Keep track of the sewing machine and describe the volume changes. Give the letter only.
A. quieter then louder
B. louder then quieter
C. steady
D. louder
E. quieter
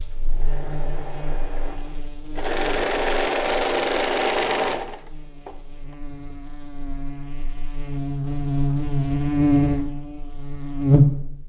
D.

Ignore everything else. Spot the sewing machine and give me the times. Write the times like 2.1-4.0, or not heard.
0.2-5.5.